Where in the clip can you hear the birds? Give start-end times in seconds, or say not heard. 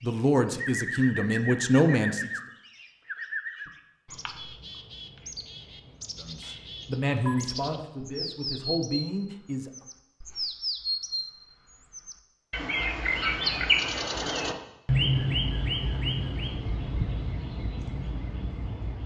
0.0-19.0.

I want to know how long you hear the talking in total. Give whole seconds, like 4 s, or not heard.
6 s.